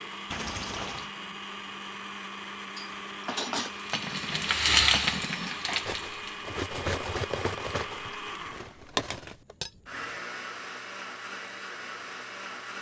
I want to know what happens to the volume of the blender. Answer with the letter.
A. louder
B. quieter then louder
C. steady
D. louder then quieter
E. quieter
C.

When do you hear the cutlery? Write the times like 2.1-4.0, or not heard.
2.7-9.7.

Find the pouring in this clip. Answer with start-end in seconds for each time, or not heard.
0.3-1.1.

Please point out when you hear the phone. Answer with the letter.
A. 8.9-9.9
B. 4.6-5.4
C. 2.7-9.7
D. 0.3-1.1
A.